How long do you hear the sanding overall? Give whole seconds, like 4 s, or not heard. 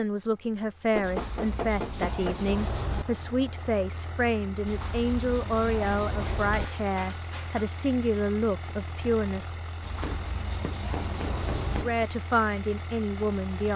6 s.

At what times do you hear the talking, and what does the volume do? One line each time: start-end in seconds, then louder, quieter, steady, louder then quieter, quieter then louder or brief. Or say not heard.
0.0-9.6 steady
11.8-13.7 brief.